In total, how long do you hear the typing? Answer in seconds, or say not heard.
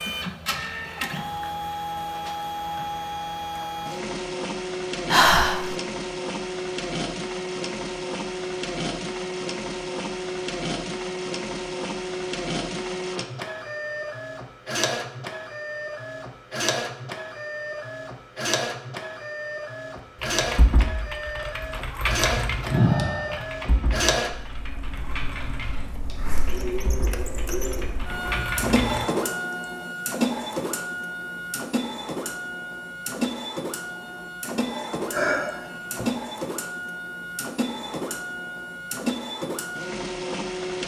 9 s.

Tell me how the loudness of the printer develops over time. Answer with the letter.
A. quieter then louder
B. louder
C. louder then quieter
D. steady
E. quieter
D.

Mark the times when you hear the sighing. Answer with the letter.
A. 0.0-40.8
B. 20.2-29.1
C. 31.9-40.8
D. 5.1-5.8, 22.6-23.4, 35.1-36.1
D.